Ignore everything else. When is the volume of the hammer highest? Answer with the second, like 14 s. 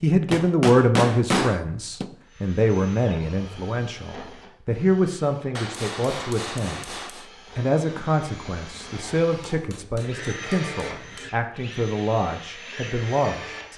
1 s.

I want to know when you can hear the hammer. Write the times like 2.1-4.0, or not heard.
0.3-2.1, 5.5-7.2, 9.3-11.3.